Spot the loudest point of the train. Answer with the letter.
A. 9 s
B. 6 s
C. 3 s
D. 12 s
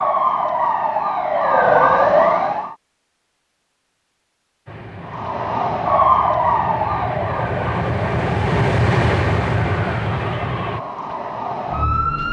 A.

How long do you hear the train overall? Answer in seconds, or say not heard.
6 s.